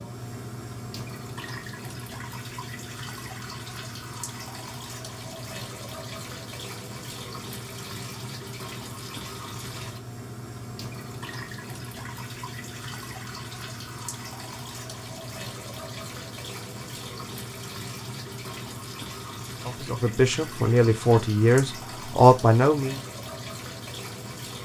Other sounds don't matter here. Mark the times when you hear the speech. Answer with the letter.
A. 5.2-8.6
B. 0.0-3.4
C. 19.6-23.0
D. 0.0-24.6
C.